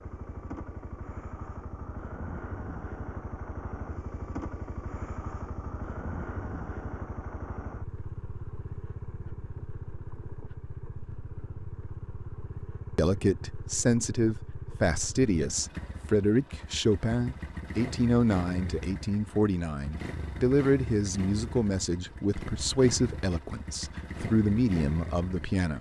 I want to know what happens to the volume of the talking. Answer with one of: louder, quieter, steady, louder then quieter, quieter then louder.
steady.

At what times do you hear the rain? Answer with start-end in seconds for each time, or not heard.
not heard.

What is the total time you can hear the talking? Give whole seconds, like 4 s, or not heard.
13 s.